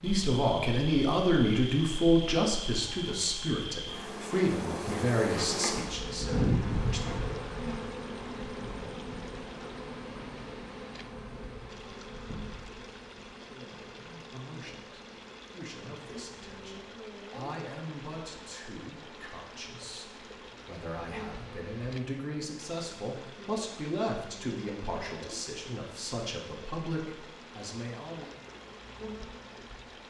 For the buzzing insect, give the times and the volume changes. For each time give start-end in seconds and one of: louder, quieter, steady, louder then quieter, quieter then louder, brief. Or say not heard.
0.0-30.0 quieter.